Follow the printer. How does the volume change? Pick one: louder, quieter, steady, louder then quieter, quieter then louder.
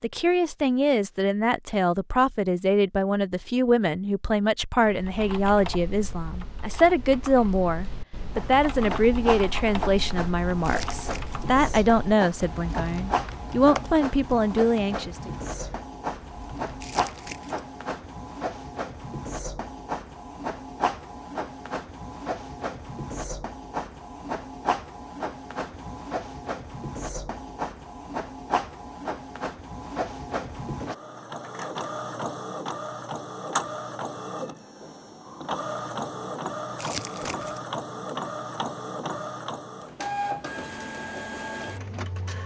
steady.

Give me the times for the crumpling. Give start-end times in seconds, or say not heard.
10.6-11.4, 16.8-17.6, 36.8-37.6.